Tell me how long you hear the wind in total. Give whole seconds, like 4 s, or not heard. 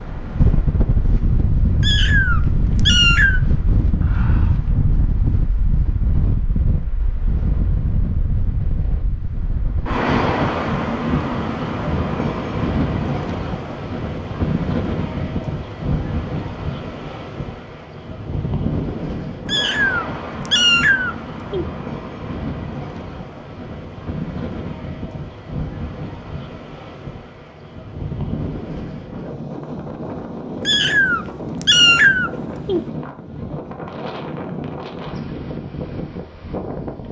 37 s.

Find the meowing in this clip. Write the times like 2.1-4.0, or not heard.
1.8-3.4, 19.4-21.6, 30.6-32.9.